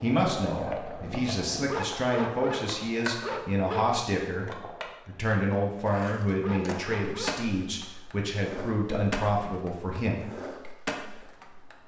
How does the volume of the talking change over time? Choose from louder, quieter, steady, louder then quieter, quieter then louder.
steady.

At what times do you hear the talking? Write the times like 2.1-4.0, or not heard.
0.0-10.2.